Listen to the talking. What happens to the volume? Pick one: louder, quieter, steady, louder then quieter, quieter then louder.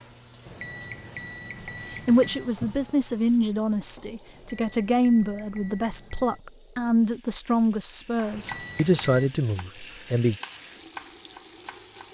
steady.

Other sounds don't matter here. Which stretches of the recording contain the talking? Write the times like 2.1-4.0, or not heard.
2.0-10.3.